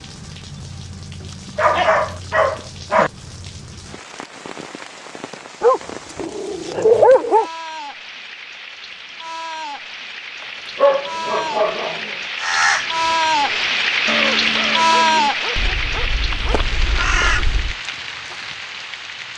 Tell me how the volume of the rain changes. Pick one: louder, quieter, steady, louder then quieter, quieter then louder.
louder then quieter.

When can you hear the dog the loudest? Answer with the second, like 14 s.
7 s.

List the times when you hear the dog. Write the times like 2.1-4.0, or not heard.
1.6-3.1, 5.6-7.5, 10.8-12.2, 14.9-16.6.